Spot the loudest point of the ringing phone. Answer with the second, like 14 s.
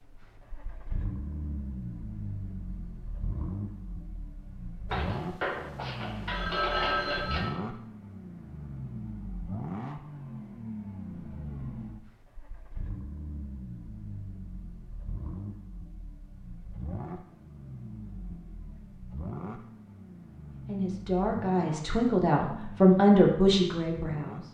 7 s.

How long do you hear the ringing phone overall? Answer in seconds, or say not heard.
3 s.